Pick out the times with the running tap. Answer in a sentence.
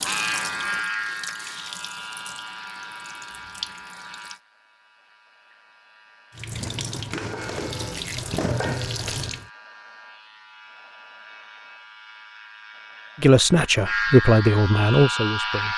You can hear the running tap from 0.0 to 4.4 s and from 6.3 to 9.5 s.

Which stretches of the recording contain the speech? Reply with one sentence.
You can hear the speech from 13.2 to 15.7 s.